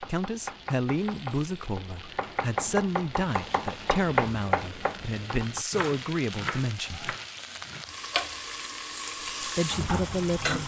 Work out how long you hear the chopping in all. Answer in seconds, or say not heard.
8 s.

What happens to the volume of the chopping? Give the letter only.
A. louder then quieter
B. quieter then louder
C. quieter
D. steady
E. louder
A.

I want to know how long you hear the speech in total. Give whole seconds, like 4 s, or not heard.
8 s.